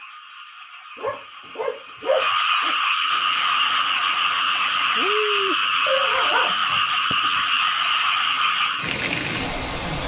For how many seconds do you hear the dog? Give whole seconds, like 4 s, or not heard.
4 s.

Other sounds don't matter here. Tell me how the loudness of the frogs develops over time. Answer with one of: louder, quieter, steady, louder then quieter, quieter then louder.
louder.